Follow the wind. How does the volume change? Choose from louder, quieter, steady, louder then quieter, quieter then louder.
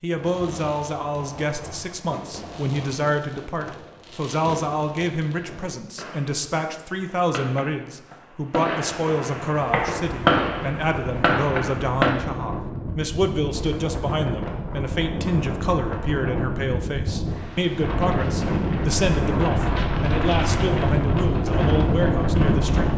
louder.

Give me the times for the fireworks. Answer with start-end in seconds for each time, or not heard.
0.1-12.2.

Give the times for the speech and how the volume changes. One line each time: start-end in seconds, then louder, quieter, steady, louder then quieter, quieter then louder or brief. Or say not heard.
0.0-22.9 steady.